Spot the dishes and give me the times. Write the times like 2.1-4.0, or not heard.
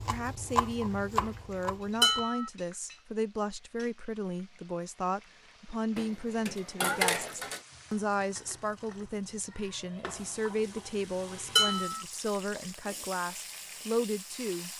2.0-2.5, 6.0-7.6, 11.6-12.1.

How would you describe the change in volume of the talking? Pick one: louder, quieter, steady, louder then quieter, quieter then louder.
steady.